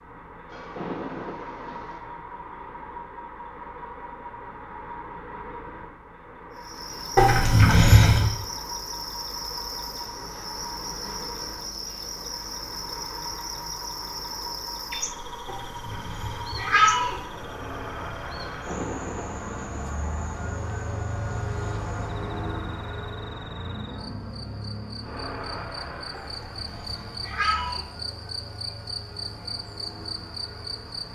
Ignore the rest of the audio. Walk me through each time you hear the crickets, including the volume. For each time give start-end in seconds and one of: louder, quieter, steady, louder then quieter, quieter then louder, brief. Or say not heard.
6.5-31.1 quieter then louder.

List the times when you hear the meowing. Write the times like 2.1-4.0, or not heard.
7.2-8.3, 15.4-17.2, 26.1-27.9.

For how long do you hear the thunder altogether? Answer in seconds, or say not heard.
3 s.